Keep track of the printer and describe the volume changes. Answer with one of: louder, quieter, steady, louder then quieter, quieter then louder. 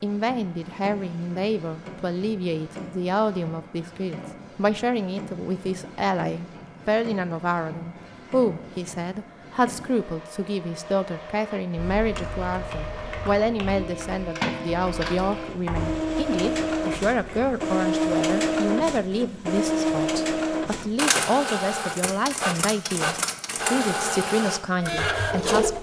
louder.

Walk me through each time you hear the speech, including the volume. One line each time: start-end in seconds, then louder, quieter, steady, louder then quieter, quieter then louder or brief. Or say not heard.
0.0-25.7 steady.